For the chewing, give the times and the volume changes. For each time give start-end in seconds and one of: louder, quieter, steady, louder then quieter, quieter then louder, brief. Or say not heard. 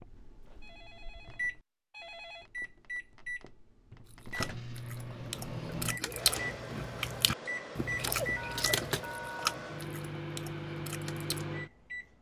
4.0-11.6 louder then quieter.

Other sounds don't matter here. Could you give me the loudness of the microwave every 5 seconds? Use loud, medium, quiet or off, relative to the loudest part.
medium, loud, loud.